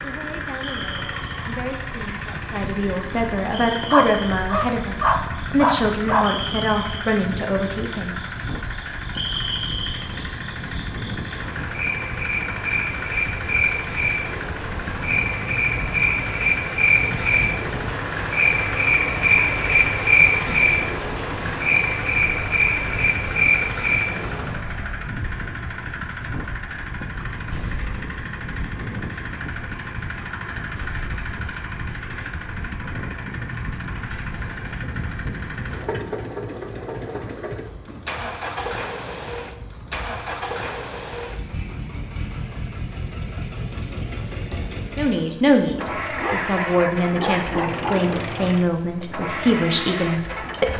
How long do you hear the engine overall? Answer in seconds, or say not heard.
51 s.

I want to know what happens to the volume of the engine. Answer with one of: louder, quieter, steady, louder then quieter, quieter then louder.
steady.